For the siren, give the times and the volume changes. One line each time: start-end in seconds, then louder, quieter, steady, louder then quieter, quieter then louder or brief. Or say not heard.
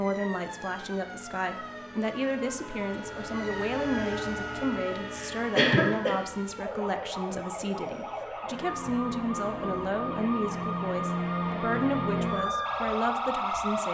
0.0-13.8 louder.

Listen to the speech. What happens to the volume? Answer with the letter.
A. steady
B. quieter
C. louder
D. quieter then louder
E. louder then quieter
A.